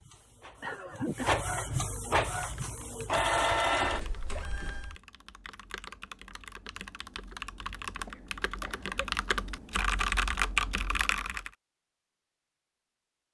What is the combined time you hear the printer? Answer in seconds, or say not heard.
5 s.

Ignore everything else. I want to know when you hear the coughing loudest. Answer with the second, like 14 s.
1 s.